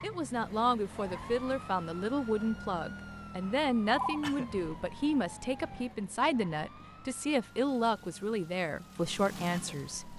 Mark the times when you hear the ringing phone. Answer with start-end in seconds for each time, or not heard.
3.4-4.2.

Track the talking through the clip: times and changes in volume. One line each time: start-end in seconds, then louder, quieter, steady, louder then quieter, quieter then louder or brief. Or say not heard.
0.0-10.1 steady.